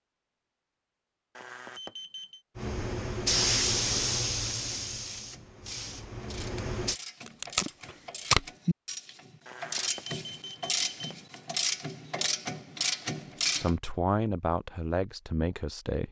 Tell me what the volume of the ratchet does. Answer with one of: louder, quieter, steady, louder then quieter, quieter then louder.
louder.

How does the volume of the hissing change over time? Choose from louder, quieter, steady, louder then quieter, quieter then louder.
quieter.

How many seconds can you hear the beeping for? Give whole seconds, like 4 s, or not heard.
3 s.